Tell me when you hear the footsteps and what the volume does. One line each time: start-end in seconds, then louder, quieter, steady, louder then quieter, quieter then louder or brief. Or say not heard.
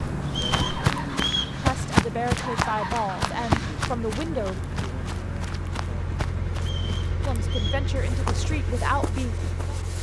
0.0-9.9 quieter.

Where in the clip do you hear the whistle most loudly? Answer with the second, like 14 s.
1 s.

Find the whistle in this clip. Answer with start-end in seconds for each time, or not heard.
0.2-1.6, 6.5-7.9.